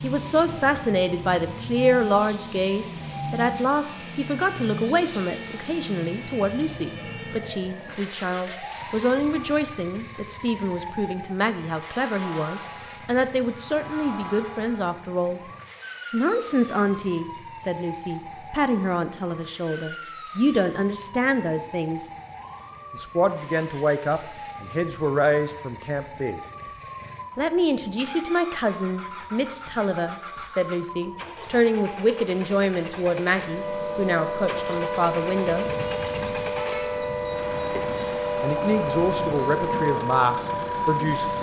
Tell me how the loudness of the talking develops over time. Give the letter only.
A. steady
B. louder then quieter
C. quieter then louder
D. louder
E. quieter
A.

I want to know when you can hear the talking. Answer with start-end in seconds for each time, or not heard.
0.0-15.4, 16.1-22.1, 22.9-26.4, 27.4-35.7, 37.8-41.3.